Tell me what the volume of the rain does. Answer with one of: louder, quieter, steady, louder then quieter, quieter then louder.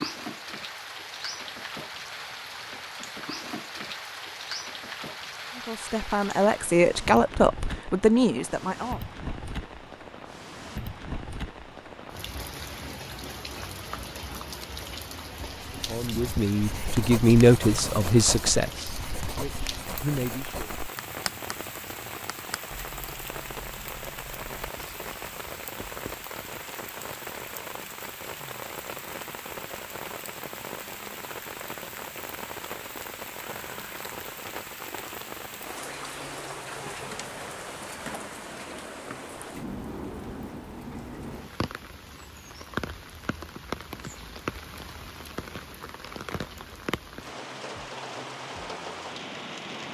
steady.